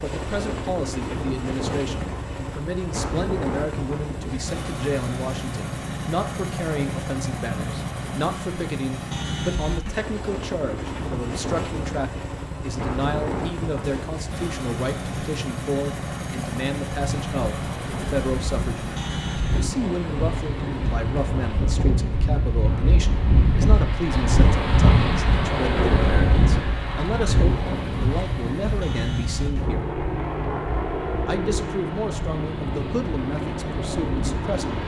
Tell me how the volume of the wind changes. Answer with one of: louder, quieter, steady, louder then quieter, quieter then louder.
louder then quieter.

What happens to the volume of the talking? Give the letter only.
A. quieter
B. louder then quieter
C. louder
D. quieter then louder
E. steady
E.